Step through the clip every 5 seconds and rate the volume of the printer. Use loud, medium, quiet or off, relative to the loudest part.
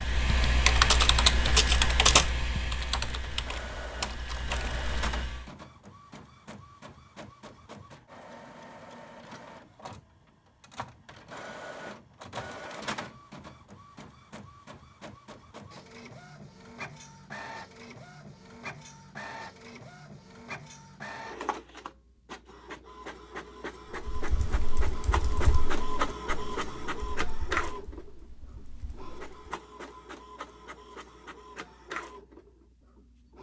medium, medium, medium, medium, medium, loud, medium.